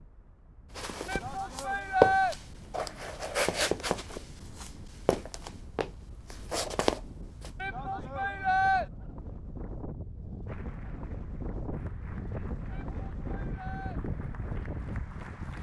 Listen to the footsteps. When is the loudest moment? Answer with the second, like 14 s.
2 s.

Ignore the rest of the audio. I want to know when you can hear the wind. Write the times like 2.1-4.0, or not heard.
0.0-15.5.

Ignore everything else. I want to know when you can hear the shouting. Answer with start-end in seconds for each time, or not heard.
1.1-2.4, 7.6-8.8, 12.7-14.0.